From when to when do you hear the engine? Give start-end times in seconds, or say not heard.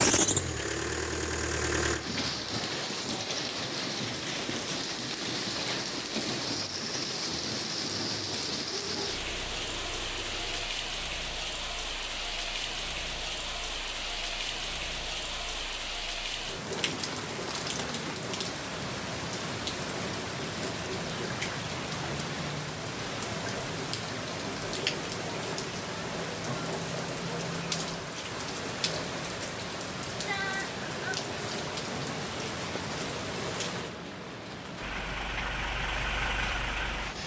0.0-10.7, 34.8-37.2.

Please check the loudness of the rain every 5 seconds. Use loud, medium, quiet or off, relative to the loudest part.
loud, loud, loud, loud, loud, loud, loud, medium.